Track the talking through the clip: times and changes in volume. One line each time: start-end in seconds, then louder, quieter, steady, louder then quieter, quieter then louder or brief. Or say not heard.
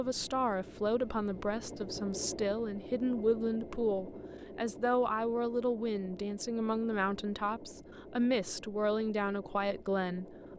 0.0-10.3 steady.